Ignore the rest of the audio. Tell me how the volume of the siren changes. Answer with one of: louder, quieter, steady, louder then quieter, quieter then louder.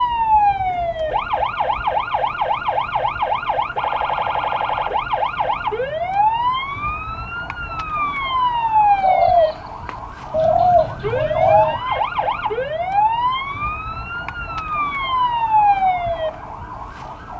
steady.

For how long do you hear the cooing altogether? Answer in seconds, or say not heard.
3 s.